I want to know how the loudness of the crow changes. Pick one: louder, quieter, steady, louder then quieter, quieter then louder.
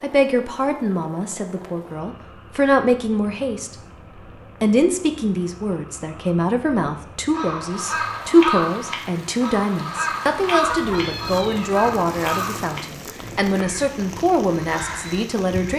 quieter.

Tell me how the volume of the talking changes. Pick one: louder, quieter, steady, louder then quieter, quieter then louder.
steady.